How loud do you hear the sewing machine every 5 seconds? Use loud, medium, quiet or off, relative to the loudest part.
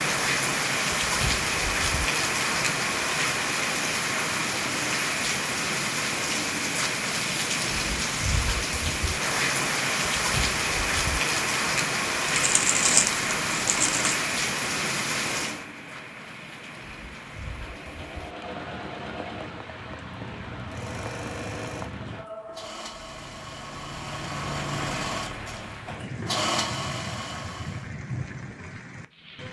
off, off, off, medium, medium, loud.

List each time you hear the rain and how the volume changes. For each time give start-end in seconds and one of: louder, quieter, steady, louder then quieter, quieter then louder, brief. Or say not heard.
0.0-29.4 quieter.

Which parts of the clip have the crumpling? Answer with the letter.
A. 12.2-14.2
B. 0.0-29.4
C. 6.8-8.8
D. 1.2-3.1
A.